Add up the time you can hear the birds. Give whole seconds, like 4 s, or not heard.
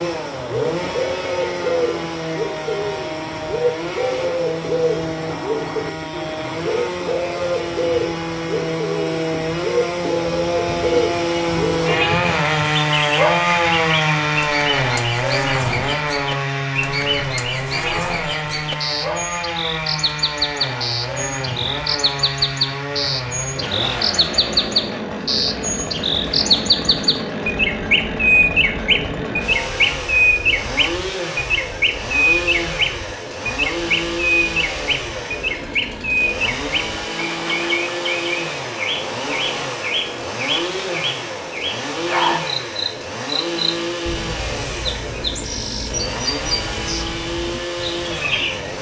49 s.